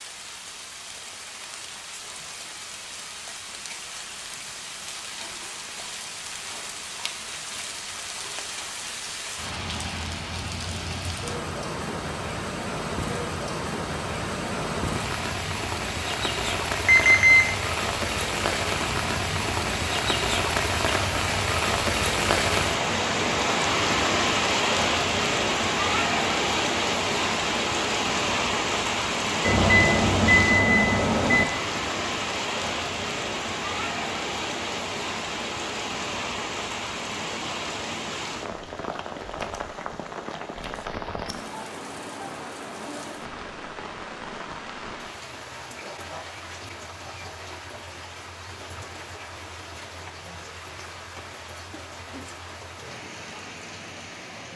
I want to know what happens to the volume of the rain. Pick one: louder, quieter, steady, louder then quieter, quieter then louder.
louder then quieter.